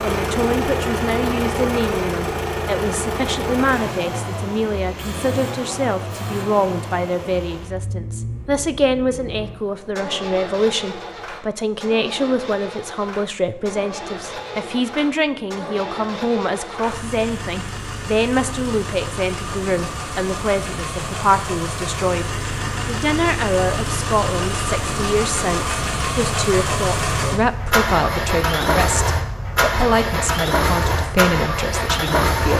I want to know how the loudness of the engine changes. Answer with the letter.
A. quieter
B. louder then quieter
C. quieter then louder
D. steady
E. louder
C.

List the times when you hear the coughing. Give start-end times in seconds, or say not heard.
not heard.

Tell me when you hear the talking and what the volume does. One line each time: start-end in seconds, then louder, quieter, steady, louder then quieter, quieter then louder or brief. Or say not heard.
0.0-32.5 steady.